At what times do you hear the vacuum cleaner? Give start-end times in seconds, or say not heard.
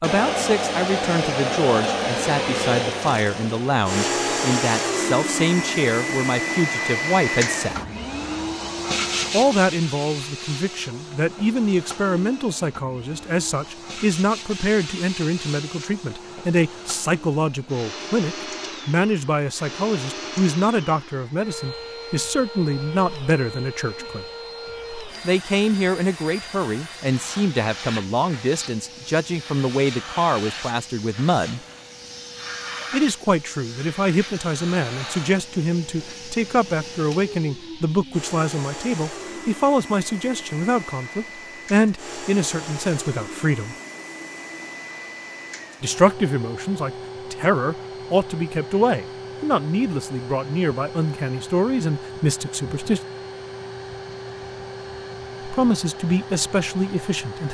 0.0-57.4.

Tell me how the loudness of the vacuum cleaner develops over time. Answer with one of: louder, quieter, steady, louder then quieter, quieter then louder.
quieter.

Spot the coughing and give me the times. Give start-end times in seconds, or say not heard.
not heard.